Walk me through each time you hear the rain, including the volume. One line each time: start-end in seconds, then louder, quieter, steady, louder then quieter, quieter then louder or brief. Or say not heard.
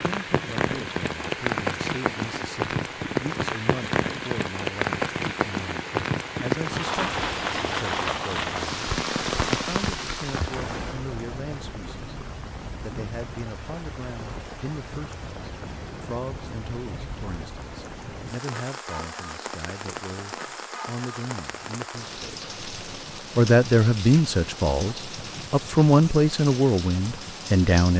0.0-27.9 quieter.